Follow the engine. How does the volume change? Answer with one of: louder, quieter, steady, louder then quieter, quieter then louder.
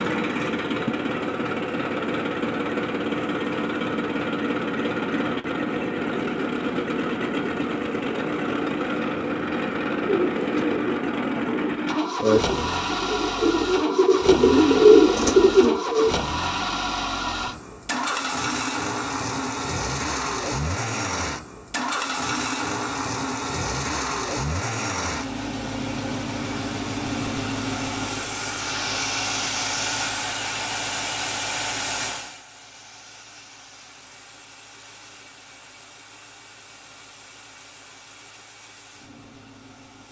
quieter.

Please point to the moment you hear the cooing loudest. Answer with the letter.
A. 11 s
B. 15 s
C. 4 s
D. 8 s
B.